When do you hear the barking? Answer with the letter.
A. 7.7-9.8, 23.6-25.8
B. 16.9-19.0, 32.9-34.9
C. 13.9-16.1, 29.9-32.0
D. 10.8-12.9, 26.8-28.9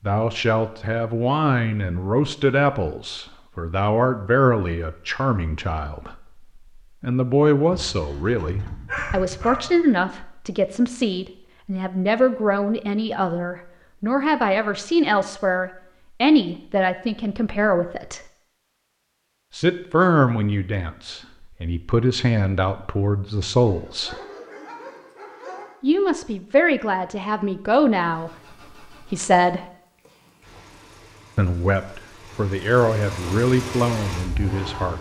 A.